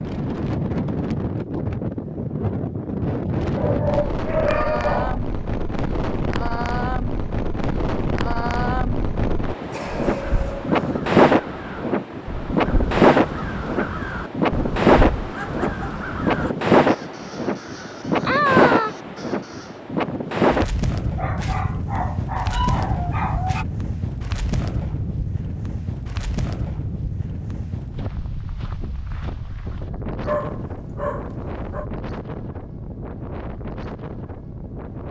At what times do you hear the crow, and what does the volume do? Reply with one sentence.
You can hear the crow from 10.1 to 19.7 s, getting louder.